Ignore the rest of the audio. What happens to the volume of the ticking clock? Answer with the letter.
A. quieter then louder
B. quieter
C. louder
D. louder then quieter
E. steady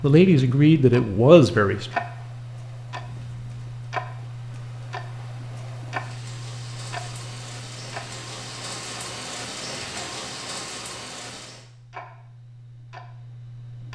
A.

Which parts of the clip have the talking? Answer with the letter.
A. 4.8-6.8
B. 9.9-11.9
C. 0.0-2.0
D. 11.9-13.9
C.